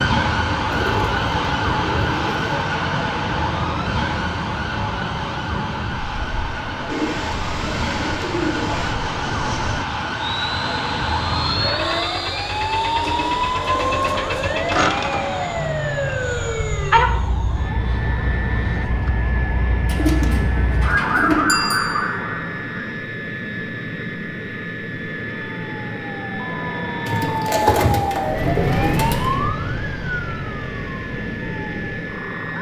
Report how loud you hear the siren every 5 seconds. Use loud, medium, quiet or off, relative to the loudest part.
loud, medium, loud, loud, loud, loud, medium.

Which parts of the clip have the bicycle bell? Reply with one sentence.
You can hear the bicycle bell from 21.4 to 22.0 s.